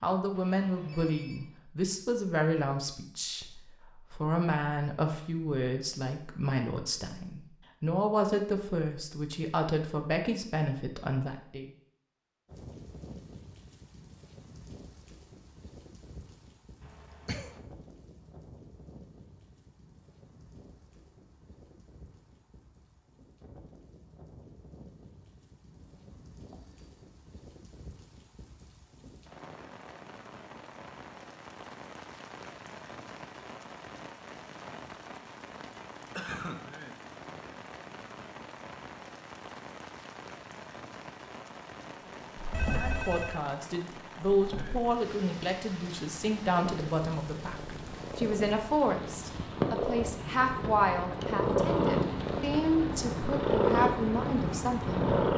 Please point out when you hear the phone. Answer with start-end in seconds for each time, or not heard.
0.3-1.6, 25.8-27.1, 42.5-43.4.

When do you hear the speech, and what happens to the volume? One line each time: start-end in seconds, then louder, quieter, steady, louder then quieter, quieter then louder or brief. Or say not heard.
0.0-11.7 steady
42.7-55.1 steady.